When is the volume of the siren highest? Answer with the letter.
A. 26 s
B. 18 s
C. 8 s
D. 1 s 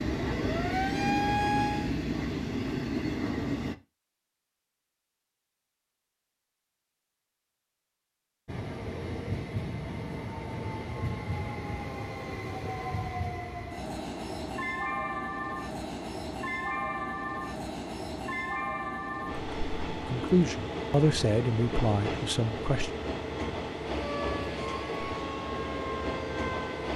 D.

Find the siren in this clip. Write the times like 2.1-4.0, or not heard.
0.2-1.9, 23.9-26.9.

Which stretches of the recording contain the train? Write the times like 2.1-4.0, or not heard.
0.0-3.8, 8.4-26.9.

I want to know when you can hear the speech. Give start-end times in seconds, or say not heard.
20.1-22.9.